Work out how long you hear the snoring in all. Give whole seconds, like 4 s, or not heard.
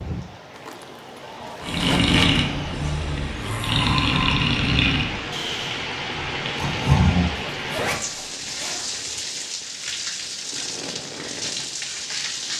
6 s.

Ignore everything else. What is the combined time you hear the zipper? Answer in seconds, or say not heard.
3 s.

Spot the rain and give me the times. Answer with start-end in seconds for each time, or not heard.
0.0-12.5.